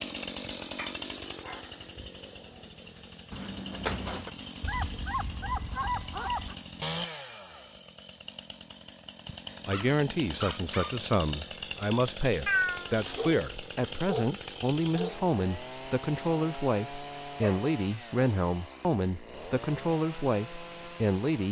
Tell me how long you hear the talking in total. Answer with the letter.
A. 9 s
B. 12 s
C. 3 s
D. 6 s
B.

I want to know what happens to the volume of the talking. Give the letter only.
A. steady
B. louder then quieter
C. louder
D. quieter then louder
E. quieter
A.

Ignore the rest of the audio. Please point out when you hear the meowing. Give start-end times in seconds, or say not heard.
3.3-4.3, 12.4-13.9.